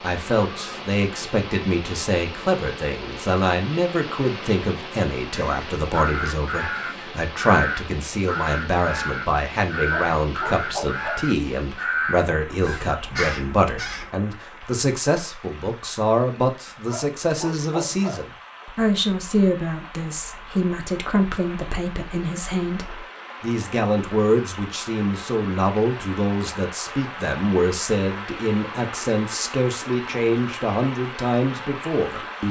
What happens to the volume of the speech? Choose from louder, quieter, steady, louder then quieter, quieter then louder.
steady.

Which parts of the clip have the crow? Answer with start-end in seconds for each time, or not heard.
5.3-14.1.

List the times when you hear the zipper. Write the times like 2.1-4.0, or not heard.
not heard.